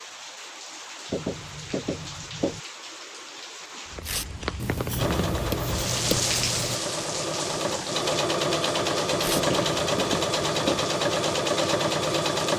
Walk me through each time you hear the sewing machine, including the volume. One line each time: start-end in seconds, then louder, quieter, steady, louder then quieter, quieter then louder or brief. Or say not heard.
5.0-12.5 louder.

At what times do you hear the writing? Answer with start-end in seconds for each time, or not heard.
1.1-2.6, 4.5-6.8, 9.3-10.8.